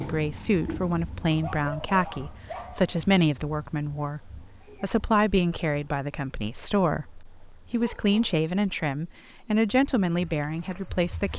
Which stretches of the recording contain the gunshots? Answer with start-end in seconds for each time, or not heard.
not heard.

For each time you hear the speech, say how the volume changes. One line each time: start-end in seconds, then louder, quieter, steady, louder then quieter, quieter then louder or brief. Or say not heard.
0.0-11.3 steady.